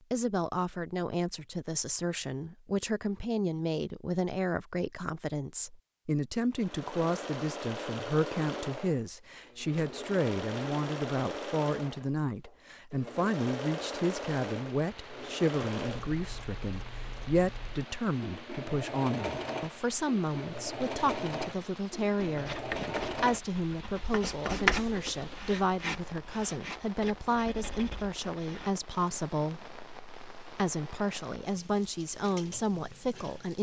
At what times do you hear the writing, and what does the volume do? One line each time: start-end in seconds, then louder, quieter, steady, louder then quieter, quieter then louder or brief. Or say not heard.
22.2-28.8 louder then quieter.